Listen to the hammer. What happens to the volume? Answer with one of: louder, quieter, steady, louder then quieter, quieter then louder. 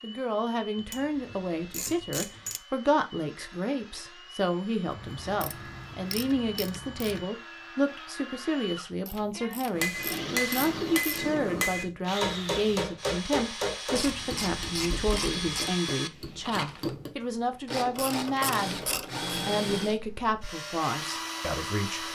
quieter.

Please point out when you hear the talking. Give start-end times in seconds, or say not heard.
0.0-18.8, 19.4-22.1.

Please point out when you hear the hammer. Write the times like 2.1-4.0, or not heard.
9.7-17.1.